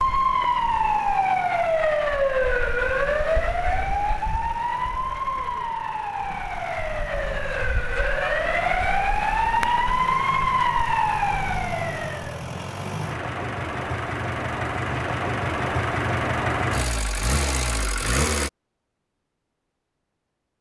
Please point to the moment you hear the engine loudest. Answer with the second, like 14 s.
16 s.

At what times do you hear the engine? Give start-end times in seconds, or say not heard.
0.0-18.5.